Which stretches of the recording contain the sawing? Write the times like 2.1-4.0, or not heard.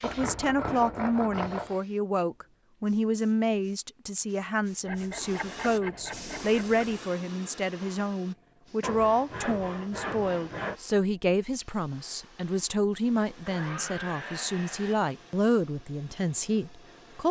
0.0-1.8, 4.8-6.8, 8.8-10.8, 13.4-14.9.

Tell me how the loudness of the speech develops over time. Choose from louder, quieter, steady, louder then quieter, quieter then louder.
steady.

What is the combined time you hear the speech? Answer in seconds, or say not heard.
17 s.